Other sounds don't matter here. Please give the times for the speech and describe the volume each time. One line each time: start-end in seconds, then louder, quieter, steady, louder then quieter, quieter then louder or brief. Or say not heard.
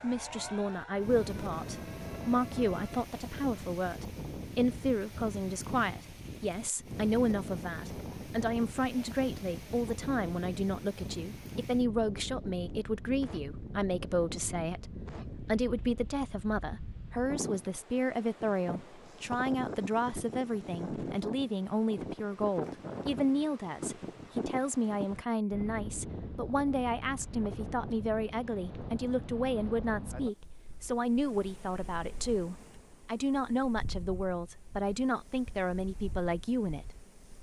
0.0-37.0 steady.